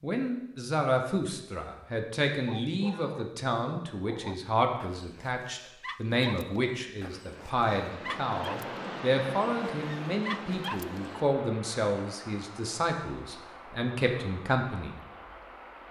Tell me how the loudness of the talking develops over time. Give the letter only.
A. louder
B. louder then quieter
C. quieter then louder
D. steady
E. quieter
D.